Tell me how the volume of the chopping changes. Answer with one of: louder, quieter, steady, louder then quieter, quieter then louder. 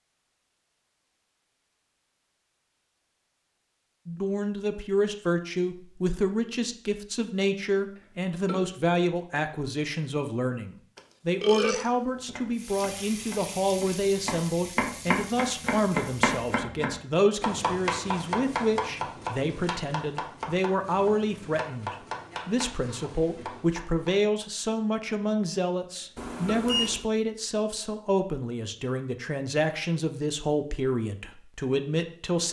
louder then quieter.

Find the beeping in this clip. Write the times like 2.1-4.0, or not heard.
26.1-27.0.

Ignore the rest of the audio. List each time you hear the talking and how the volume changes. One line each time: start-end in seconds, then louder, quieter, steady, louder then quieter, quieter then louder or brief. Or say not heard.
4.0-32.4 steady.